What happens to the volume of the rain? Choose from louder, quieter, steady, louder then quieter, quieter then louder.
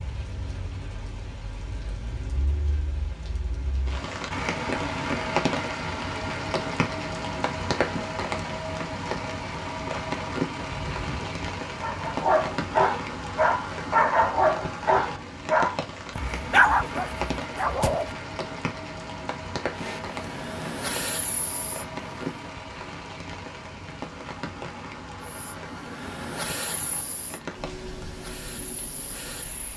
quieter.